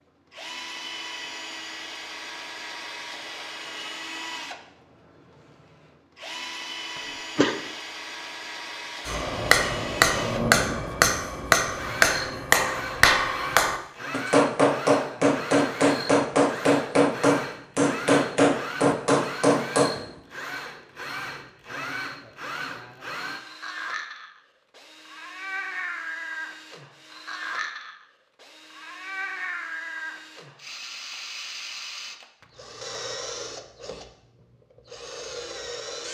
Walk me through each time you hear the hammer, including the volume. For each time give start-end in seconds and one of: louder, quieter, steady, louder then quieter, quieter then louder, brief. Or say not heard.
9.1-19.9 steady.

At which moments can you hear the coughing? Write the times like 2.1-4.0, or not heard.
7.0-7.5.